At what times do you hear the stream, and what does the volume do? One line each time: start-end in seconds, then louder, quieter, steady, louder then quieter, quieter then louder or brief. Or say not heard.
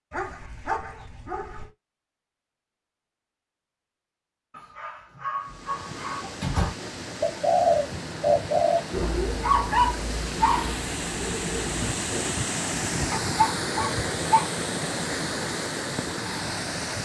5.4-17.0 louder.